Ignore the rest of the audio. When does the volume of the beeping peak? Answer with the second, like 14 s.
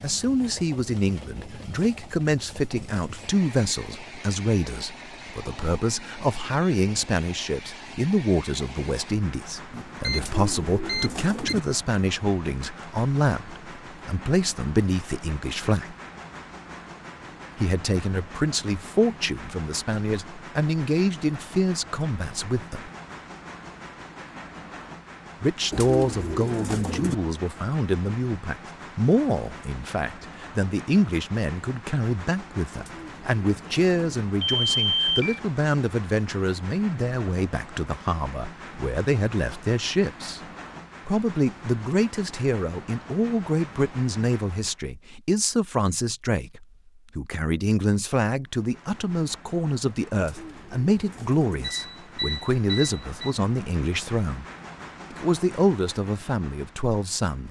35 s.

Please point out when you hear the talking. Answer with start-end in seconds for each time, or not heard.
0.0-15.9, 17.6-22.9, 25.4-40.4, 41.0-54.5, 55.1-57.4.